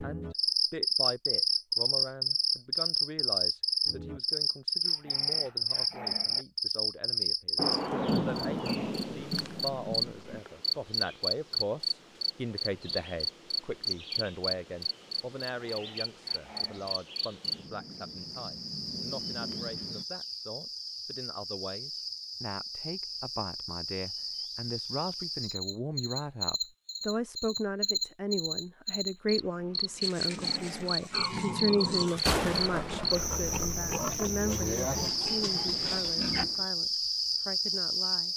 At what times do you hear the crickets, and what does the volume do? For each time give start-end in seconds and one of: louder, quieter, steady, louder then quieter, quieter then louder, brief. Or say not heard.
0.0-38.3 quieter then louder.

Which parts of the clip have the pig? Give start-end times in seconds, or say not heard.
30.0-36.5.